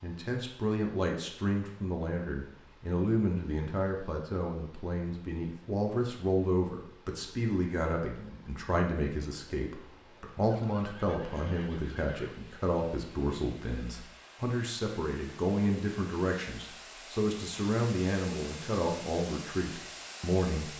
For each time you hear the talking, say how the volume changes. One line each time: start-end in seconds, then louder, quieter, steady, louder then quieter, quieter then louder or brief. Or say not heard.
0.0-20.7 steady.